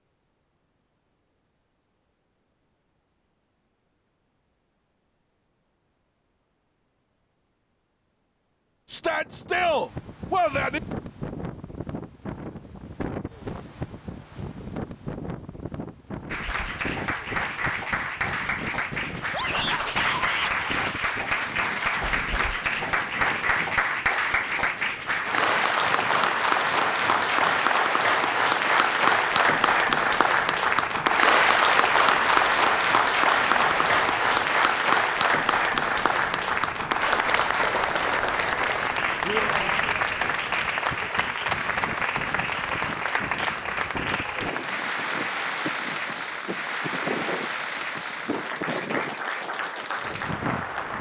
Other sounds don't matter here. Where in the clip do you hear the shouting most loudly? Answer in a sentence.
The loudest moment of the shouting is at 10 seconds.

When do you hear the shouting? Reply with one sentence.
The shouting can be heard from 8.9 to 10.8 s, from 19.3 to 20.5 s and from 39.2 to 40.0 s.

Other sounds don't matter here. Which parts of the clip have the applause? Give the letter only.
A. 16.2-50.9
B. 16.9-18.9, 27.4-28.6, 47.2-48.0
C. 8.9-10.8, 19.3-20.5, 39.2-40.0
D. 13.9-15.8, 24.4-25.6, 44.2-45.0
A.